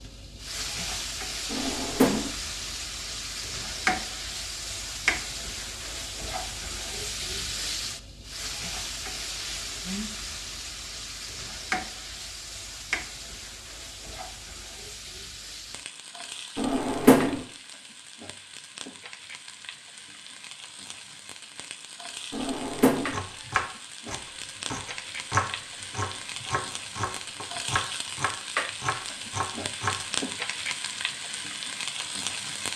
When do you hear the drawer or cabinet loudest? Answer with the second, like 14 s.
17 s.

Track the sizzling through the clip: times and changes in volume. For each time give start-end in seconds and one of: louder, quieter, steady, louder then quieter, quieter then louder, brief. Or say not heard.
0.0-32.7 quieter then louder.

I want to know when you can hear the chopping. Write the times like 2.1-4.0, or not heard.
23.1-30.0.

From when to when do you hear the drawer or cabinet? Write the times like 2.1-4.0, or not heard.
1.5-2.3, 16.6-17.4, 22.3-23.2.